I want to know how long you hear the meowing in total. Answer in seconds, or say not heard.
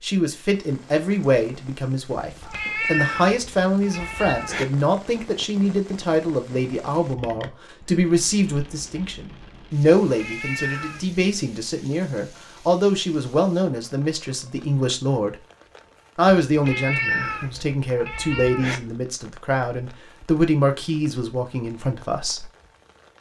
6 s.